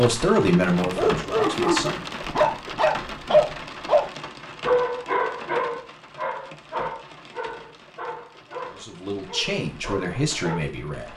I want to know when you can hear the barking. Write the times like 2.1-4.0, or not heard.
0.8-10.7.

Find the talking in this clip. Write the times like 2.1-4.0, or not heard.
0.0-2.0, 8.7-11.1.